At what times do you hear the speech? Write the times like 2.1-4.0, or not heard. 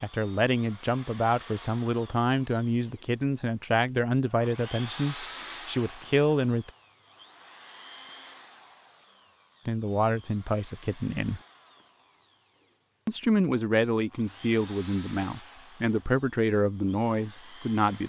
0.0-6.7, 9.7-11.4, 13.1-18.0.